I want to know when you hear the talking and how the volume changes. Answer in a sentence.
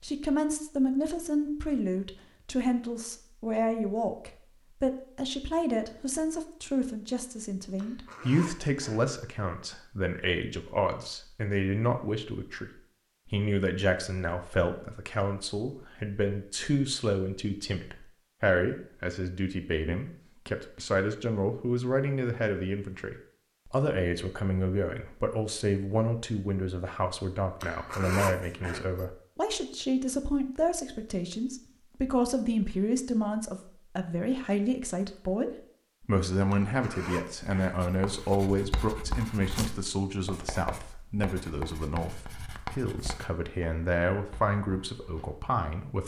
You can hear the talking from 0.0 to 46.0 s, at a steady volume.